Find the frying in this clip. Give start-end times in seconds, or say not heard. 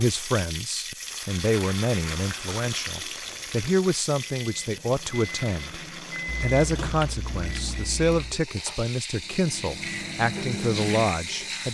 0.0-11.6.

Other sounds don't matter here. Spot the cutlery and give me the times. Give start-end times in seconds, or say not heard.
not heard.